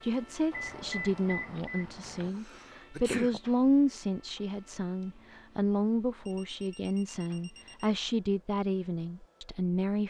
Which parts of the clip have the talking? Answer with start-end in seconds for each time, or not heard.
0.0-10.0.